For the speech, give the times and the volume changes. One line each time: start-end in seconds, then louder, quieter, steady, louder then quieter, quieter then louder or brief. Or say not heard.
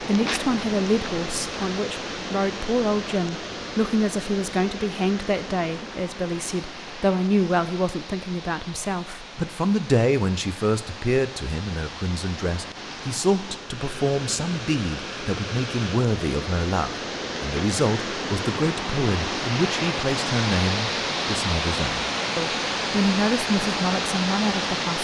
0.0-24.9 steady.